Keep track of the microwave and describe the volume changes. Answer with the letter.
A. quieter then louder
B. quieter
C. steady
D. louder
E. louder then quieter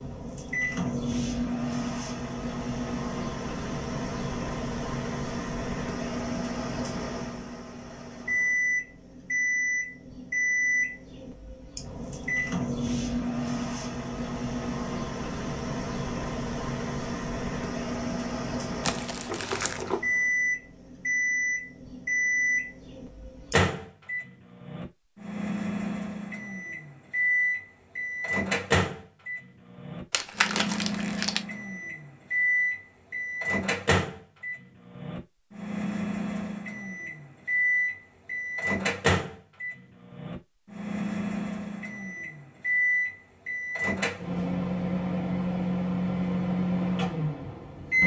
C.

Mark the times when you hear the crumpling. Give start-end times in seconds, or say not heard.
18.8-19.9, 30.1-31.4.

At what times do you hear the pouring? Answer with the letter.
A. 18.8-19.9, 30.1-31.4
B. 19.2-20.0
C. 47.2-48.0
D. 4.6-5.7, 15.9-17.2
B.